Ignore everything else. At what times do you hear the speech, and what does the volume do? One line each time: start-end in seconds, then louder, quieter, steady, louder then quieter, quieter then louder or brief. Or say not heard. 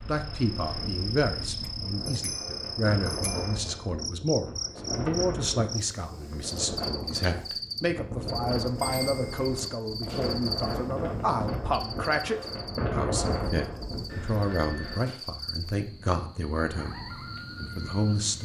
0.1-18.4 steady.